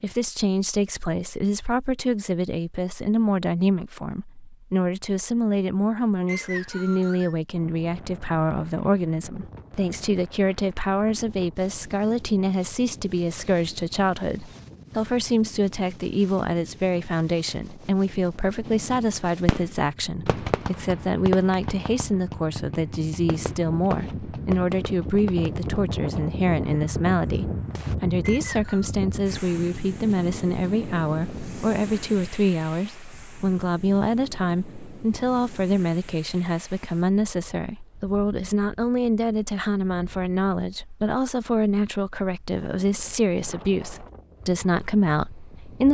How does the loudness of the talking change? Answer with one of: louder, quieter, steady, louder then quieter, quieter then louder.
steady.